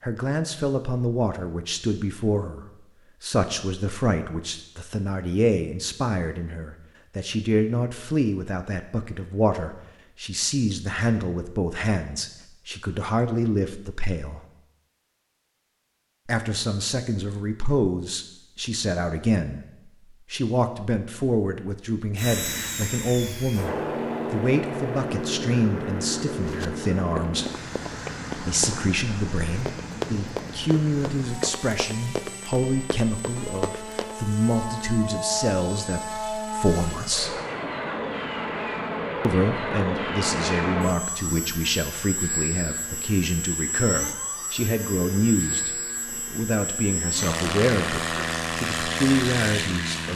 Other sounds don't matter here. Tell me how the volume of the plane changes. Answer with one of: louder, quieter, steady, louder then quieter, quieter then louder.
quieter then louder.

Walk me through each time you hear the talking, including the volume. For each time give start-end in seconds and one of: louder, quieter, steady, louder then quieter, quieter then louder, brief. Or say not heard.
0.0-14.4 steady
16.2-27.5 steady
28.4-37.4 steady
39.2-50.1 steady.